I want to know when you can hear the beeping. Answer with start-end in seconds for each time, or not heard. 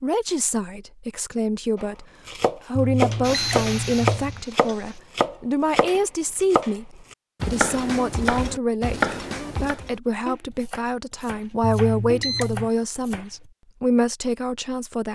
2.8-4.5, 11.6-12.7.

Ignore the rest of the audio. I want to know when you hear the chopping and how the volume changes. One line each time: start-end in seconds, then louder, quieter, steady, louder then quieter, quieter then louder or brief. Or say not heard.
1.8-13.5 quieter.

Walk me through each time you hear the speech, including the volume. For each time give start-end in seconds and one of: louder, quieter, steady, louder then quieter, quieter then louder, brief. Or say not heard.
0.0-2.0 brief
2.6-15.0 steady.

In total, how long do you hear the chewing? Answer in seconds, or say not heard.
not heard.